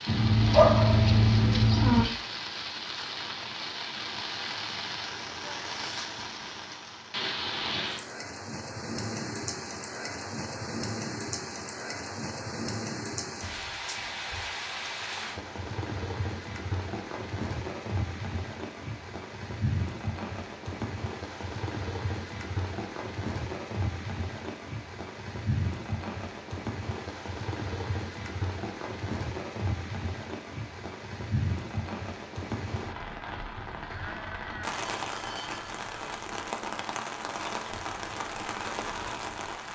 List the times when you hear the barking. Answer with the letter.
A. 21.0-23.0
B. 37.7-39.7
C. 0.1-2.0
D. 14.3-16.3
C.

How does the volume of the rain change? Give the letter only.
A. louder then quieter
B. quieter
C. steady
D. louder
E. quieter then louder
C.